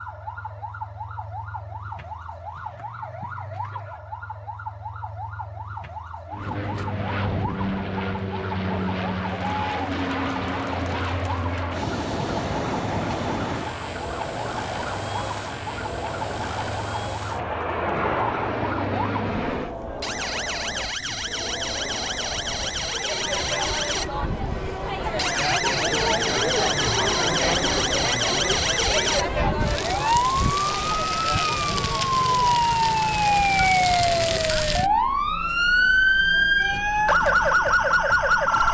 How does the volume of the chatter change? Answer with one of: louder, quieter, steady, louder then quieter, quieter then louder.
louder then quieter.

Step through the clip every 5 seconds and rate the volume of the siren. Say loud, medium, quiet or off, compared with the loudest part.
quiet, quiet, quiet, quiet, medium, medium, loud, loud.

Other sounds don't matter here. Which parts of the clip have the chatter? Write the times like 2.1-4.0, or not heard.
9.2-38.6.